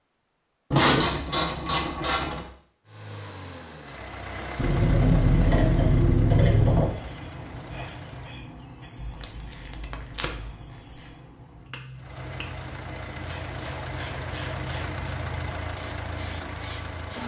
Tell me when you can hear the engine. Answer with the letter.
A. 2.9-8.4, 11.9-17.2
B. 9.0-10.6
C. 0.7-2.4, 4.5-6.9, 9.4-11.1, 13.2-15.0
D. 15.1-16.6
A.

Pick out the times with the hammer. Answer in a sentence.
The hammer can't be heard in this clip.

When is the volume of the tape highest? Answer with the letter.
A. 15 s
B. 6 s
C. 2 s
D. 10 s
D.